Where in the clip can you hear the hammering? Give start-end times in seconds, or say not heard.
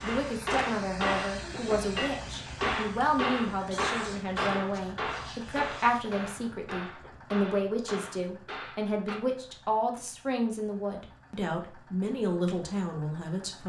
0.0-9.2.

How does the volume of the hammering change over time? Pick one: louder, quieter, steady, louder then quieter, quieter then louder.
quieter.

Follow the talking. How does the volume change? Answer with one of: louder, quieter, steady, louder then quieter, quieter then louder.
steady.